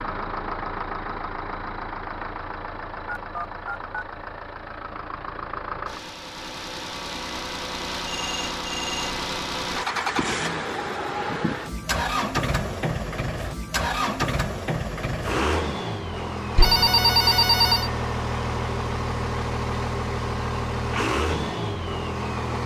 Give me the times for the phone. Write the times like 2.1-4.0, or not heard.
3.0-4.0, 8.1-9.2, 16.6-17.9.